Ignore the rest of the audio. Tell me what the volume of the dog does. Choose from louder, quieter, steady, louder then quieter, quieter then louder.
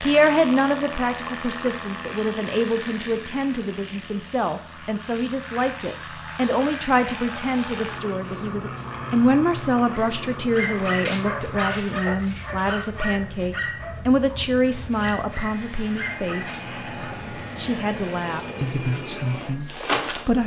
quieter.